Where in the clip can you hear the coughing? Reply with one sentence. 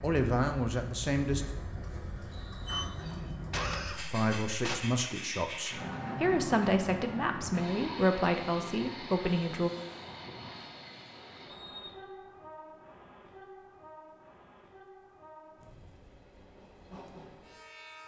The coughing can be heard from 3.0 to 4.8 s.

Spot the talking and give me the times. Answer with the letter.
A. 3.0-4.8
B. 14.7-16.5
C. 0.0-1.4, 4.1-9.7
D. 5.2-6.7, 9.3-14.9
C.